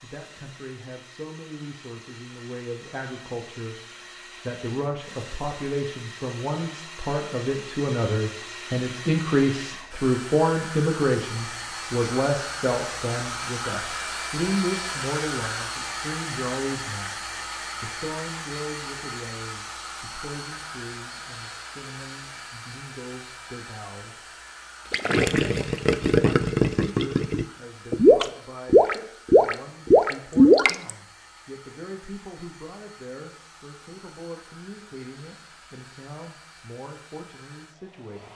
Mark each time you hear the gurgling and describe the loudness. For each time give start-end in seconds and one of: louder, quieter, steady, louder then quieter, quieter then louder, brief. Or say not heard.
24.9-30.9 louder.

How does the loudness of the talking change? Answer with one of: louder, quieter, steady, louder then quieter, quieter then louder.
louder then quieter.